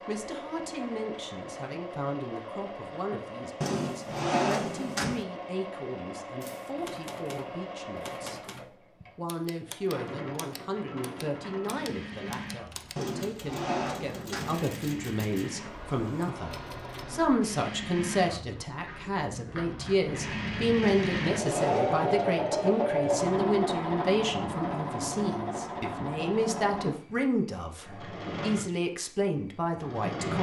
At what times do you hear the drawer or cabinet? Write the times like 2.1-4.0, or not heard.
3.6-5.2, 12.9-14.6, 20.8-22.1.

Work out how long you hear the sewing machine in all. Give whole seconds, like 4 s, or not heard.
30 s.